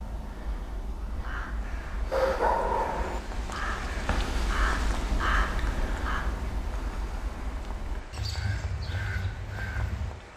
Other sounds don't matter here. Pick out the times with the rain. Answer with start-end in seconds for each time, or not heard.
1.4-10.3.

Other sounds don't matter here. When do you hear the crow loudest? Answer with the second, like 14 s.
5 s.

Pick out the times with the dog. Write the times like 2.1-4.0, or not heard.
2.1-3.2.